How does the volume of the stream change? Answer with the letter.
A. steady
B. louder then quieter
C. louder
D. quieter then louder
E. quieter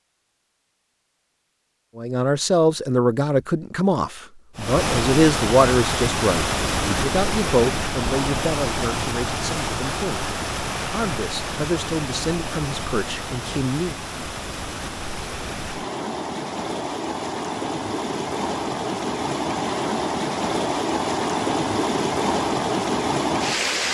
D.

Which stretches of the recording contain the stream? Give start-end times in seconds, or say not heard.
4.5-23.8.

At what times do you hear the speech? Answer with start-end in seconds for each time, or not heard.
1.9-13.9.